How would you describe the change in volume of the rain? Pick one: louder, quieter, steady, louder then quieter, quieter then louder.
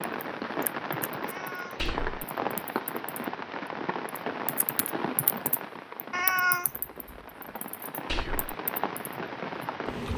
quieter then louder.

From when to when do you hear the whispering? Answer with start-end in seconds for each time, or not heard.
1.8-2.2, 8.1-8.6.